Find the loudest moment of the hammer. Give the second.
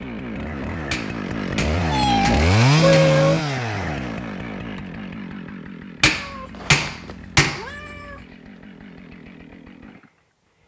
7 s.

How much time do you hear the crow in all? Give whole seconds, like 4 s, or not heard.
not heard.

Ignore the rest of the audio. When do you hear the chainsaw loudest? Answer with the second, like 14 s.
3 s.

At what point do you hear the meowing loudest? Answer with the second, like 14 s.
3 s.